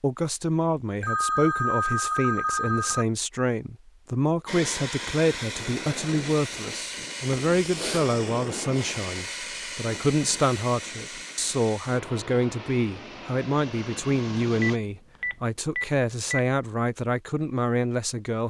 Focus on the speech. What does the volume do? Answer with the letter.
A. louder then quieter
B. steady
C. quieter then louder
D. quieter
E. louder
B.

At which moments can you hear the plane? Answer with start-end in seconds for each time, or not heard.
4.5-14.8.